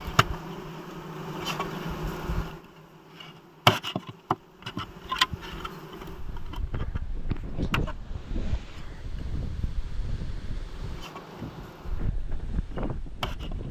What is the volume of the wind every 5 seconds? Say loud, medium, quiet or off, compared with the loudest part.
off, loud, loud.